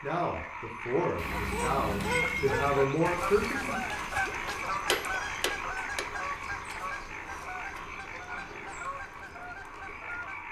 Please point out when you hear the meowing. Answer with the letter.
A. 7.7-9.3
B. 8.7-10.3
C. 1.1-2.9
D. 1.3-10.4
C.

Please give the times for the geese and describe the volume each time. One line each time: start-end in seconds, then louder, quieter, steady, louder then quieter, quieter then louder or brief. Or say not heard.
1.3-10.4 quieter.